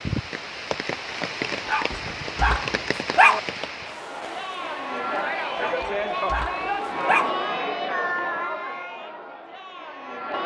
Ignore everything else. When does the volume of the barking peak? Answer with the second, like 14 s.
3 s.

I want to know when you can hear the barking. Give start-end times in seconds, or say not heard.
1.6-3.4, 5.5-7.3.